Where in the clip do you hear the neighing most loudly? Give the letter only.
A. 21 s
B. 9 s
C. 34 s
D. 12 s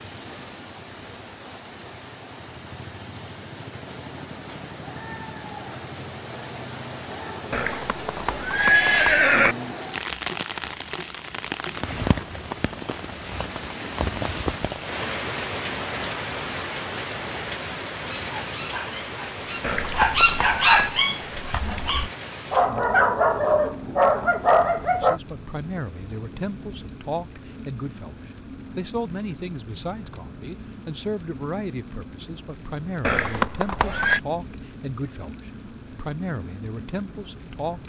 B.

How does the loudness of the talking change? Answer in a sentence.
The volume of the talking stays about the same.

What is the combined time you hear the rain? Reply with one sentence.
You can hear the rain for 38 seconds altogether.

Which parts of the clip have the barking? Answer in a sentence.
You can hear the barking from 18.1 to 25.2 s.